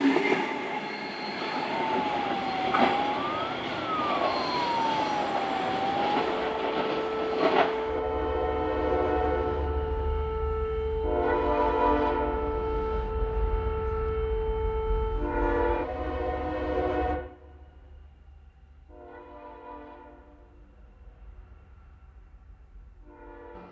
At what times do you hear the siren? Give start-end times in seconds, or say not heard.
1.7-15.3.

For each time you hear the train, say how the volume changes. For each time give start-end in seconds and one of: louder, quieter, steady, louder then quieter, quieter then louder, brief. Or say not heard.
0.0-23.6 quieter.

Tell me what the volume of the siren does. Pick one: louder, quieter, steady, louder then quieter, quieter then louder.
steady.